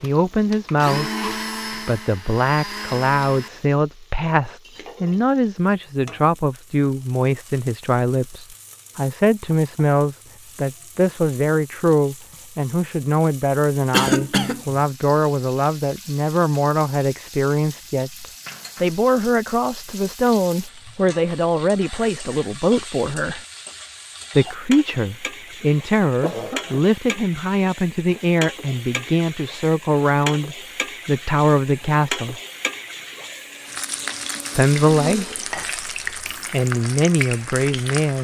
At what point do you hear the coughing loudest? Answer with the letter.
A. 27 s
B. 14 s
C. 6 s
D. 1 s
B.